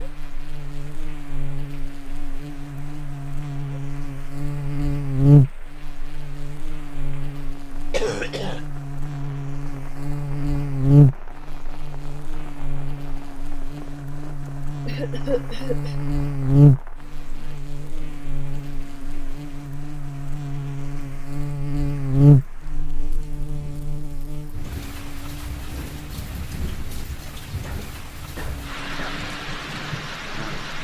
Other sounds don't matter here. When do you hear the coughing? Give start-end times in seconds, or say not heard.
7.9-8.7, 14.4-15.9, 27.6-29.2.